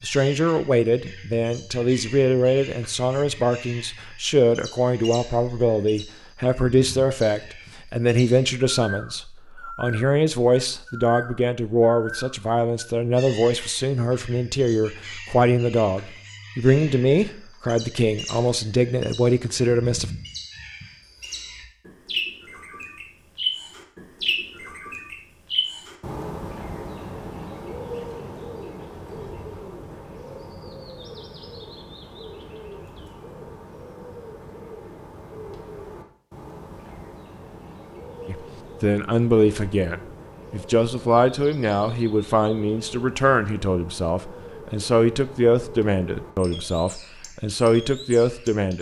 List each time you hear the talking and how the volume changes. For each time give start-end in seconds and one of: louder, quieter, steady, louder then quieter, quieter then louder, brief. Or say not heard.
0.0-20.1 steady
38.2-48.7 steady.